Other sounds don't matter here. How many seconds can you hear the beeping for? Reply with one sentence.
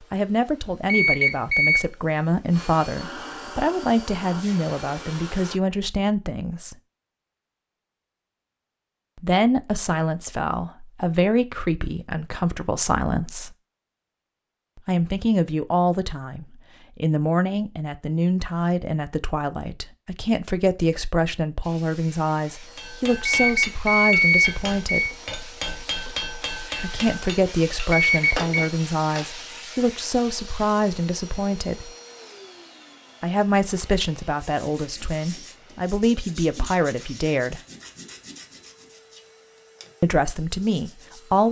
The beeping can be heard for 4 seconds in total.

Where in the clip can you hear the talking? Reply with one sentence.
You can hear the talking from 0.1 to 6.8 s, from 9.2 to 13.6 s, from 14.8 to 25.1 s, from 26.8 to 31.9 s, from 33.2 to 37.6 s and from 40.0 to 41.4 s.